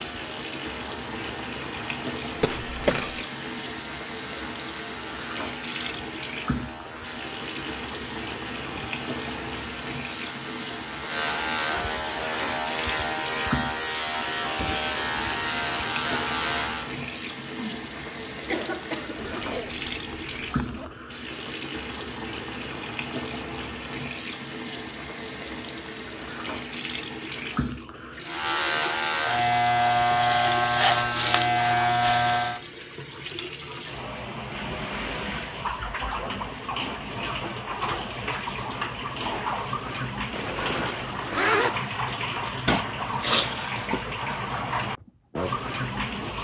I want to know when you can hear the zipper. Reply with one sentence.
You can hear the zipper from 19.1 to 21.0 s and from 40.3 to 41.8 s.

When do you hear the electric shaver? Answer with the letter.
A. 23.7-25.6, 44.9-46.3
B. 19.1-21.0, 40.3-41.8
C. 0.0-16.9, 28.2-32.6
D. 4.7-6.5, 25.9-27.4
C.